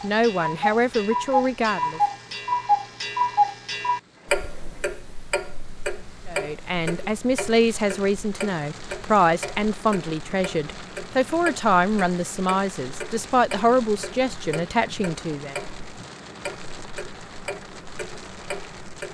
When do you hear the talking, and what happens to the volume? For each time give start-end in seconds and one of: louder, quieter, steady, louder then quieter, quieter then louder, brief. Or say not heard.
0.0-2.0 brief
6.2-15.6 steady.